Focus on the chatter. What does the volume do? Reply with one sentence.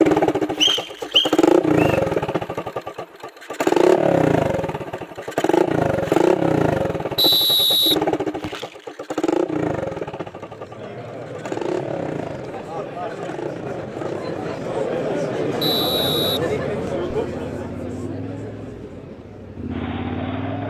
The volume of the chatter goes up, then down.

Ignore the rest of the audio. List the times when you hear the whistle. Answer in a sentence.
You can hear the whistle from 0.6 to 2.0 s, from 7.2 to 8.7 s and from 15.6 to 17.1 s.